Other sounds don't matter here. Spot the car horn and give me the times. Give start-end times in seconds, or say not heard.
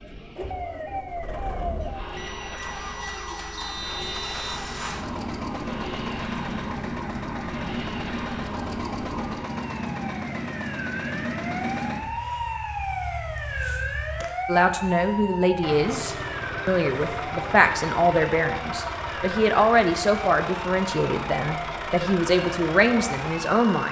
not heard.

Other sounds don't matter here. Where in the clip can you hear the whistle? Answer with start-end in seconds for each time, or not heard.
3.5-4.5.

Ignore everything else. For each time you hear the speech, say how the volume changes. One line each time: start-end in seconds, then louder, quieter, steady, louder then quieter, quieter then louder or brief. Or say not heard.
14.4-23.8 steady.